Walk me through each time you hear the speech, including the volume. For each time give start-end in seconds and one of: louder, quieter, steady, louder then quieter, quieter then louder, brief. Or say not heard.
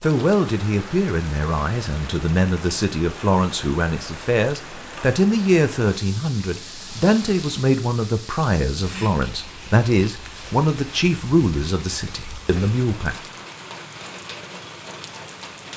0.0-13.2 steady.